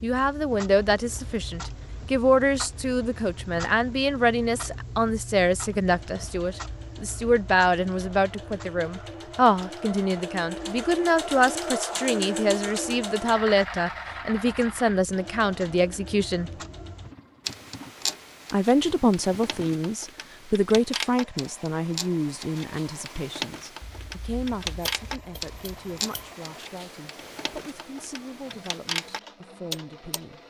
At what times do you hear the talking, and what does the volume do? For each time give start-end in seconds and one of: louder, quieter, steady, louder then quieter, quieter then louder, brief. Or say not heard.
0.0-16.5 steady
18.5-30.4 quieter.